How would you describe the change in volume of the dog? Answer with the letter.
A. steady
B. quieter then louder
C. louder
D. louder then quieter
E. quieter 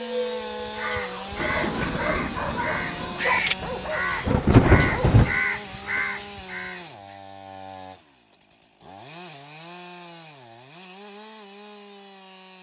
D.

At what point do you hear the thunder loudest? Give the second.
5 s.